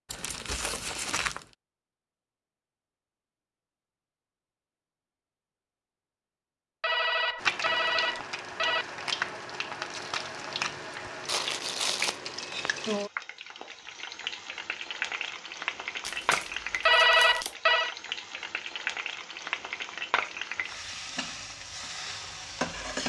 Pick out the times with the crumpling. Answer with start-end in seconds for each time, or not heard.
0.1-1.4, 11.2-12.2, 16.0-17.6.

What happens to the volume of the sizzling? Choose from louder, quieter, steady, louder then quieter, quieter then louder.
steady.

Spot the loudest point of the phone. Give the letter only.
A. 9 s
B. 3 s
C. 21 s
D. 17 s
D.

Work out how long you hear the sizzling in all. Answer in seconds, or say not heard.
16 s.